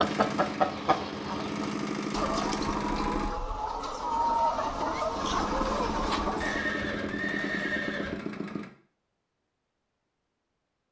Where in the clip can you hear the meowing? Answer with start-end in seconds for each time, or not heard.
not heard.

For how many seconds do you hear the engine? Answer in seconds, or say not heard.
7 s.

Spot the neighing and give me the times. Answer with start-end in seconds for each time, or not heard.
6.4-8.2.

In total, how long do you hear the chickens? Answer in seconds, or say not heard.
7 s.